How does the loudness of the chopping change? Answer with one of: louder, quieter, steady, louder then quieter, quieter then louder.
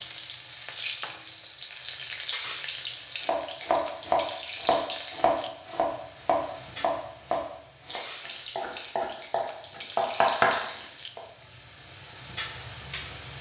quieter then louder.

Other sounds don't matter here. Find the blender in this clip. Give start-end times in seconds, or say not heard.
not heard.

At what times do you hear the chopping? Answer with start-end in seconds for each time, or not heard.
3.2-11.2.